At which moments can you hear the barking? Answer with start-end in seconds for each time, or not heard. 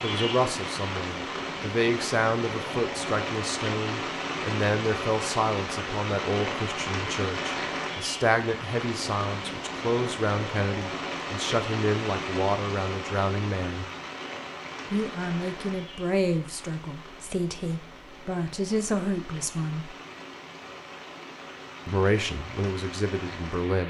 not heard.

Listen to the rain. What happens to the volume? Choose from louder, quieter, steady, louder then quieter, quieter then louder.
quieter.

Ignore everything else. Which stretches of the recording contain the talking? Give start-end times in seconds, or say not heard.
0.0-13.8, 14.9-19.9, 21.9-23.8.